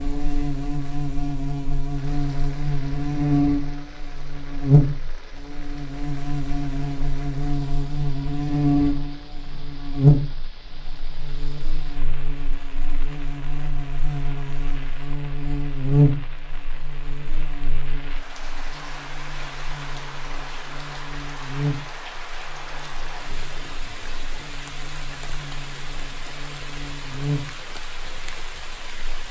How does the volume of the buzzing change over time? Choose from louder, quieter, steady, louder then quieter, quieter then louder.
quieter.